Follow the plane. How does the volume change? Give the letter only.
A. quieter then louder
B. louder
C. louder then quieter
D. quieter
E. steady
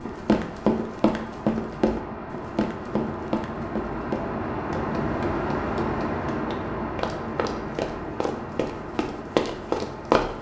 C.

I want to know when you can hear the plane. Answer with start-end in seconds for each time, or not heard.
0.0-10.3.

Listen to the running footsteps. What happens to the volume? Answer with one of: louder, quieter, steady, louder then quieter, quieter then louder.
quieter then louder.